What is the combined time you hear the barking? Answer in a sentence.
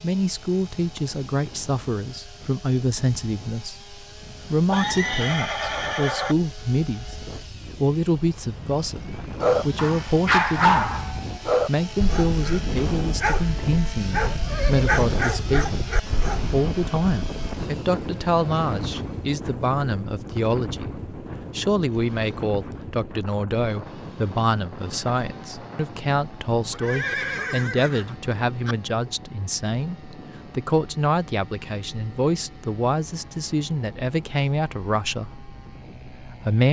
You can hear the barking for 7 seconds altogether.